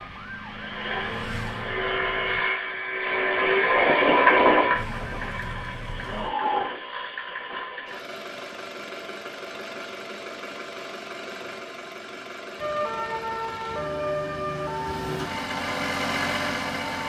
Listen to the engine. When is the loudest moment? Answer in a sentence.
The loudest moment of the engine is at 4 seconds.